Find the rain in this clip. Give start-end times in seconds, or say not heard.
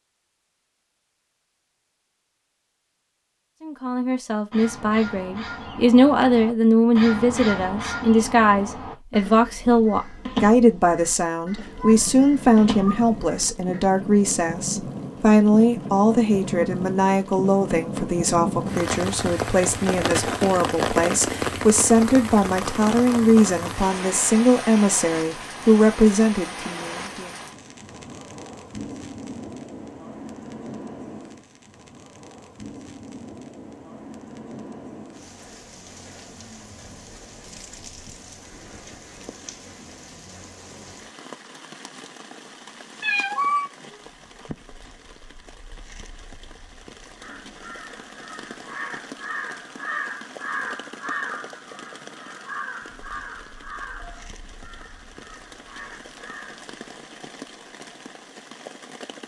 11.7-59.2.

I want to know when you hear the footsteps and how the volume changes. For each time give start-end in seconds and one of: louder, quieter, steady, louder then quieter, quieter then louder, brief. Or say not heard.
not heard.